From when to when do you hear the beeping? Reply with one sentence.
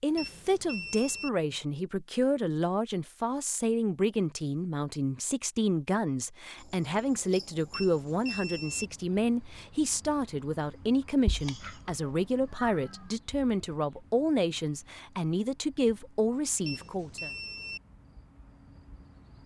The beeping can be heard from 0.1 to 1.3 s, from 7.7 to 8.9 s and from 16.6 to 17.8 s.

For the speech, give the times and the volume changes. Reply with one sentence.
The speech can be heard from 0.0 to 17.3 s, at a steady volume.